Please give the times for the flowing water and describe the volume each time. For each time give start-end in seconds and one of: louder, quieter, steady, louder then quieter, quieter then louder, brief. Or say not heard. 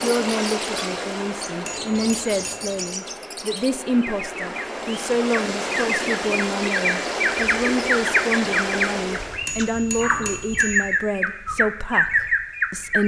0.0-9.5 quieter then louder.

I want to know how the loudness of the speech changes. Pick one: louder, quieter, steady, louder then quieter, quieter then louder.
steady.